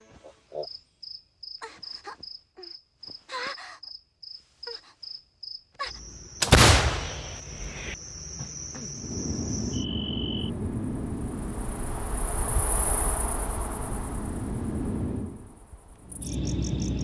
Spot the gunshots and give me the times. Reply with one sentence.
The gunshots can be heard from 6.4 to 8.0 s.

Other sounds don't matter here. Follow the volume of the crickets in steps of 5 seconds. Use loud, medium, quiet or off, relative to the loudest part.
loud, loud, loud, medium.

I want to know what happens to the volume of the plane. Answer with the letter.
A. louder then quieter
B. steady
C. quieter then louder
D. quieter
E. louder
C.